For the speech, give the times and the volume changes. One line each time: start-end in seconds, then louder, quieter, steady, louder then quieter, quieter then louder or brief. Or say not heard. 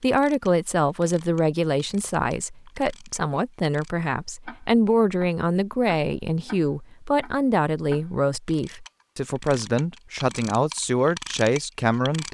0.0-12.2 steady.